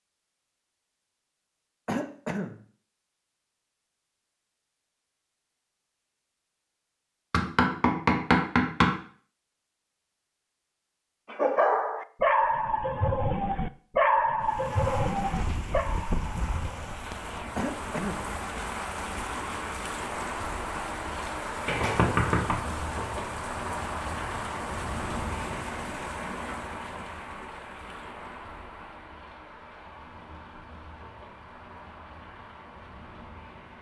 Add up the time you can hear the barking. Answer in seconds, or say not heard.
6 s.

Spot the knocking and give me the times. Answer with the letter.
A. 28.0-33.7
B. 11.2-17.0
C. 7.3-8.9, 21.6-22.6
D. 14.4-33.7
C.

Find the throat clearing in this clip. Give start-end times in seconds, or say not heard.
1.9-2.6, 17.6-18.3, 25.8-26.5.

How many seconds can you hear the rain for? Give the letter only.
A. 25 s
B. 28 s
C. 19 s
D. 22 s
C.